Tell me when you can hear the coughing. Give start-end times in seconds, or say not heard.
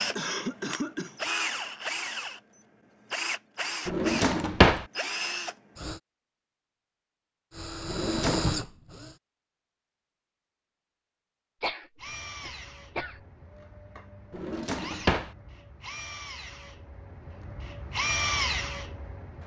0.1-1.1, 11.6-13.2.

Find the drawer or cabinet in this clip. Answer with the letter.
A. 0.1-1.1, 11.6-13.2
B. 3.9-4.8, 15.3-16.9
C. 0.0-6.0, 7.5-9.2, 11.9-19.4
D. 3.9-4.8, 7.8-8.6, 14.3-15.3
D.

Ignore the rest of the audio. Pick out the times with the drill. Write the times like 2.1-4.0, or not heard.
0.0-6.0, 7.5-9.2, 11.9-19.4.